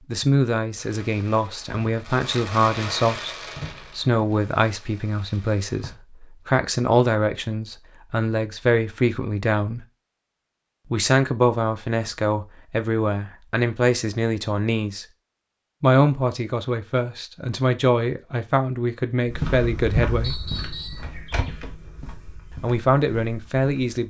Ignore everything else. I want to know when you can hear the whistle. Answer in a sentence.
The whistle can be heard from 20.2 to 21.1 s.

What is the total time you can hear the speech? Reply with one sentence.
You can hear the speech for 20 seconds altogether.